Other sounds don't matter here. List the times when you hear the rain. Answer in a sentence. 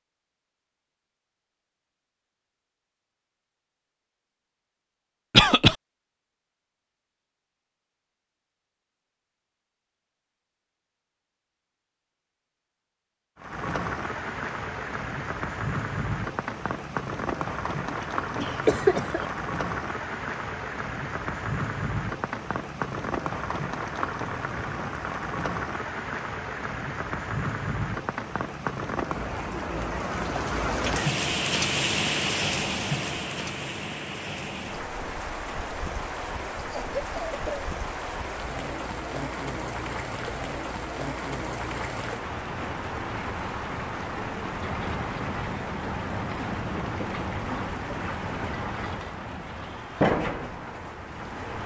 You can hear the rain from 13.3 to 51.6 s.